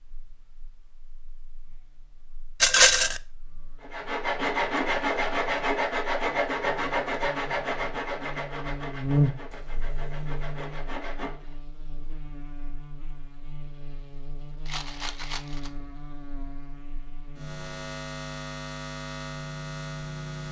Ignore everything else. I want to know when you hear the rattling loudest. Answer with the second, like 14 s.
3 s.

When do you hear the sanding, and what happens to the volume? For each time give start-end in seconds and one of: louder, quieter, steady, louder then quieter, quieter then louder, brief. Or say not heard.
3.8-11.4 quieter.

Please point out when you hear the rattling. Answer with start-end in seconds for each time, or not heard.
2.6-3.2, 14.7-15.7.